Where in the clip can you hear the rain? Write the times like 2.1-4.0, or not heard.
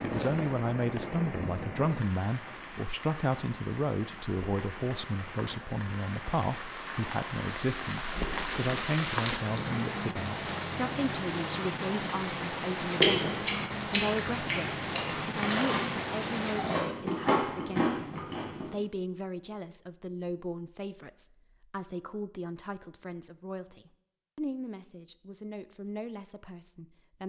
0.0-16.9.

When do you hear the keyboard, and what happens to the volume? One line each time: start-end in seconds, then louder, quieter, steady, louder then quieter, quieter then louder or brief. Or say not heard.
not heard.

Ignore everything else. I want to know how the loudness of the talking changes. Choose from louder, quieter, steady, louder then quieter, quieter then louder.
quieter.